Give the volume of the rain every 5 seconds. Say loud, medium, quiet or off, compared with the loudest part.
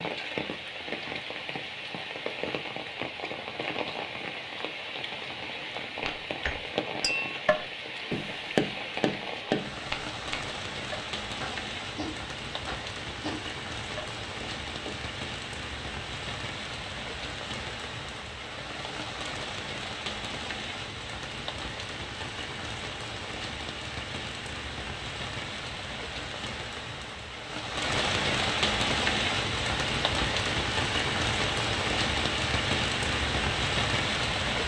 medium, medium, medium, medium, medium, loud, loud.